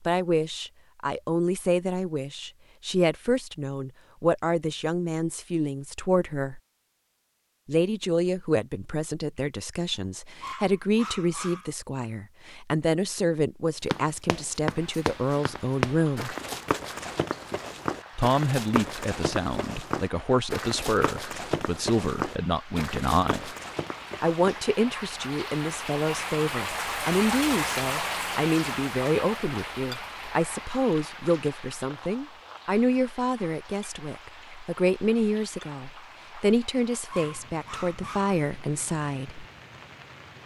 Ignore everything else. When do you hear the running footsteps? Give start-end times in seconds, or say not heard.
13.8-24.6.